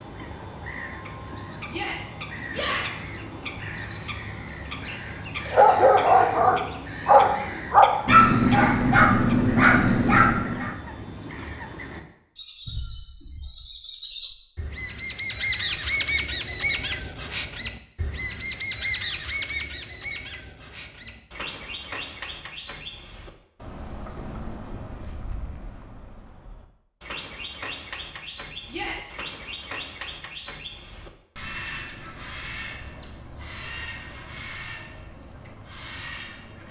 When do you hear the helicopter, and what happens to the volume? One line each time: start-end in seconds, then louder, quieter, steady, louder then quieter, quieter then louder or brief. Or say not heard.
not heard.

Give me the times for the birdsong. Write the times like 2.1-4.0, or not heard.
0.0-36.6.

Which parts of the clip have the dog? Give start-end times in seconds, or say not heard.
5.5-10.7.